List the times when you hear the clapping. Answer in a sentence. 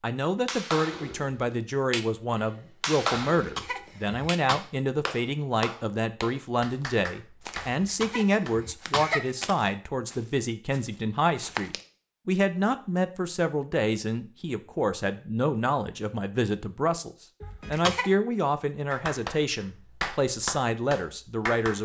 You can hear the clapping from 0.5 to 8.6 s and from 18.9 to 21.7 s.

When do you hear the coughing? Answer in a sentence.
You can hear the coughing from 3.4 to 4.6 s, from 7.8 to 9.5 s and from 17.4 to 18.1 s.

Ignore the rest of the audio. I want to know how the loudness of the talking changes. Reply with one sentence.
The volume of the talking stays about the same.